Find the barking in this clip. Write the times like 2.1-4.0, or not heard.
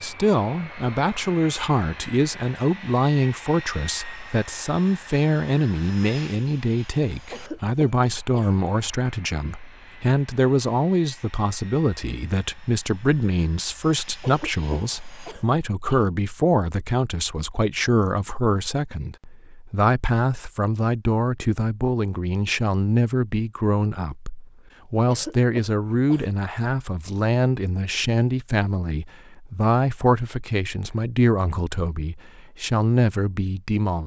not heard.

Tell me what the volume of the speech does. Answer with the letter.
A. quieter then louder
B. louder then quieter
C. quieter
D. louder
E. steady
E.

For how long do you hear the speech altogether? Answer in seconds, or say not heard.
34 s.